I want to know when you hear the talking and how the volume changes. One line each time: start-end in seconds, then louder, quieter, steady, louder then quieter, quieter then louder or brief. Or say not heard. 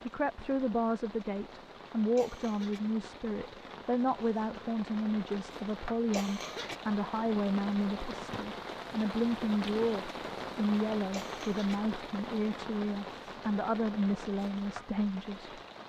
0.0-15.6 steady.